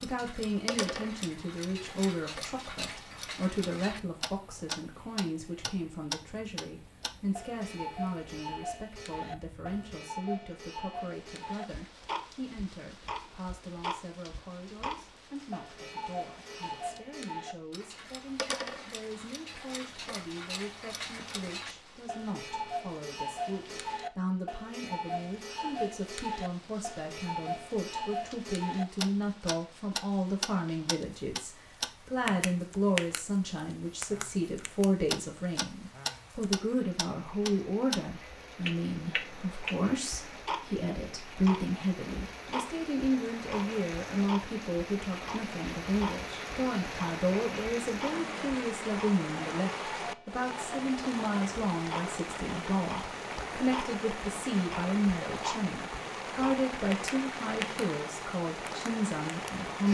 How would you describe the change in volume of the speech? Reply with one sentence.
The volume of the speech goes down, then up.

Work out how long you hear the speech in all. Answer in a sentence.
You can hear the speech for 60 seconds altogether.